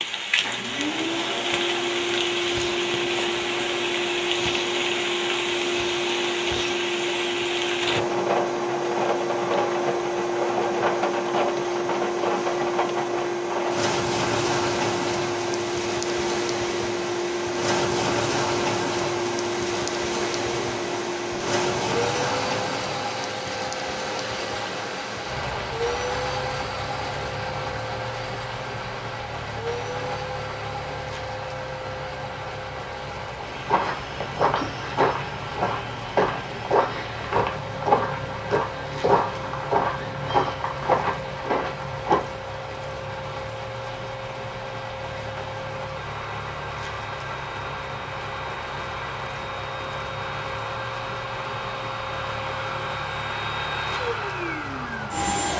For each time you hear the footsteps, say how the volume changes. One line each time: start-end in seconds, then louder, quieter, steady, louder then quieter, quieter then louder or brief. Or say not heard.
33.5-42.2 steady.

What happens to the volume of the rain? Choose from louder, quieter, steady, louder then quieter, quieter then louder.
quieter.